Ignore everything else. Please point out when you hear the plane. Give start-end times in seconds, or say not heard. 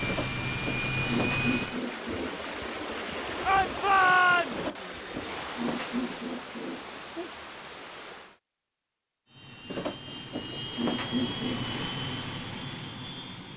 0.0-1.8, 9.2-13.5.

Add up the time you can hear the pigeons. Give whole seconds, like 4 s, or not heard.
7 s.